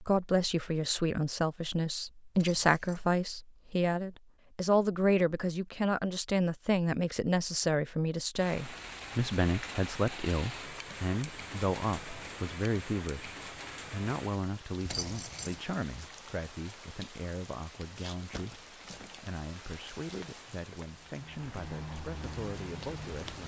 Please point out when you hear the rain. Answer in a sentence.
The rain can be heard from 8.3 to 23.4 s.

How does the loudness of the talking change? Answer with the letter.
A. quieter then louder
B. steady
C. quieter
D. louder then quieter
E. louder
C.